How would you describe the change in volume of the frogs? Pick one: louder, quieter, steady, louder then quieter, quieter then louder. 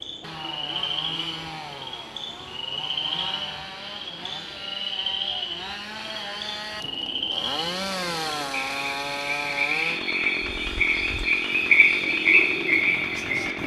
louder.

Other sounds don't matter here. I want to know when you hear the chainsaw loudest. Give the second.
8 s.